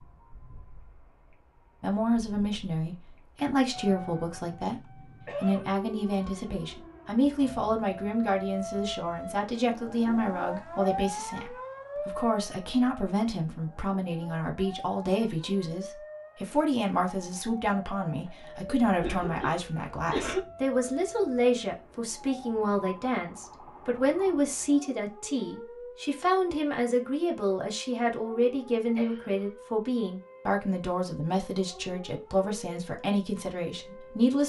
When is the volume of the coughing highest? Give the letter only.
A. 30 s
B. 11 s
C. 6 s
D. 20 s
D.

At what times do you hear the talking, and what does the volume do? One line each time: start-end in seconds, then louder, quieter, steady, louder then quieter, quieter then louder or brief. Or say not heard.
1.8-34.4 steady.